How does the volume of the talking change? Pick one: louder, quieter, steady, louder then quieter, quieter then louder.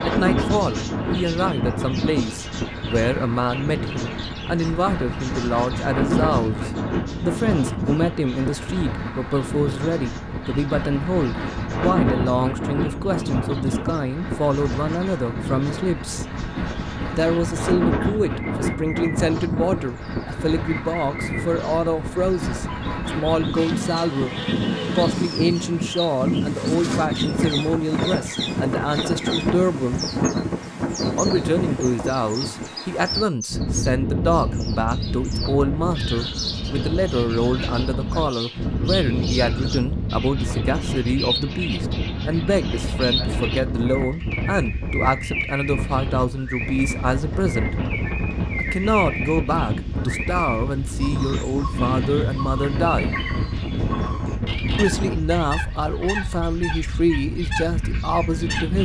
steady.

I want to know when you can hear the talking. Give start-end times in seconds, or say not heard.
0.0-16.4, 17.1-24.4, 24.9-30.1, 31.1-47.8, 48.5-53.2, 54.8-58.8.